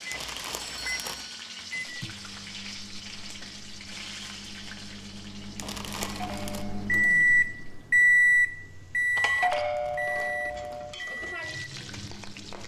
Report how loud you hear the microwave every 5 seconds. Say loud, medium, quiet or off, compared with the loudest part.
quiet, loud, quiet.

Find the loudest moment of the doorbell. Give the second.
10 s.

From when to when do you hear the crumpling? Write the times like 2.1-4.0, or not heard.
0.1-1.2, 5.5-6.7, 9.8-10.8.